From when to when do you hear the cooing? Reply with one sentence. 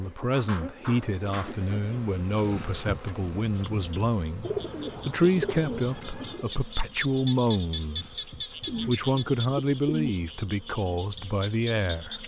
You can hear the cooing from 0.1 to 1.9 s, from 4.4 to 6.5 s and from 8.6 to 10.2 s.